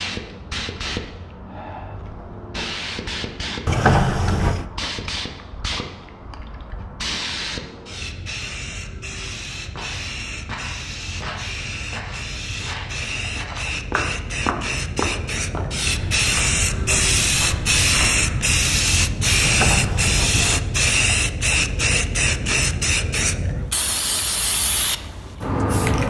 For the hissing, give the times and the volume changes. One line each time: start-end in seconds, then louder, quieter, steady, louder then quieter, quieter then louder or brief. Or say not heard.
0.0-26.0 louder.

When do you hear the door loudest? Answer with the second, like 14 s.
4 s.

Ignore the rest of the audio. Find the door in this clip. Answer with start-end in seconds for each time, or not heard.
3.6-4.7, 19.4-20.6.